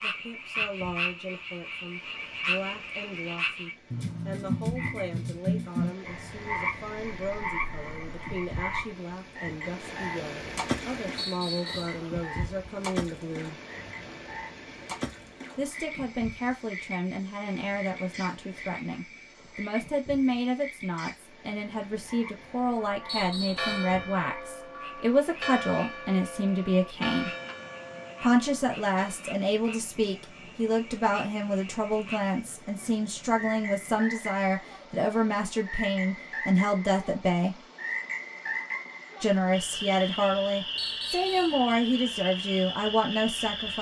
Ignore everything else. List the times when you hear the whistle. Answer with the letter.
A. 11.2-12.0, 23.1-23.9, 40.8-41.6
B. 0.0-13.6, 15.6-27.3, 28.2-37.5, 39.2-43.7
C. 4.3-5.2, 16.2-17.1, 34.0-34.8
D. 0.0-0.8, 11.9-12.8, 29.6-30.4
A.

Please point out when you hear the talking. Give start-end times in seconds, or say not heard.
0.0-13.6, 15.6-27.3, 28.2-37.5, 39.2-43.7.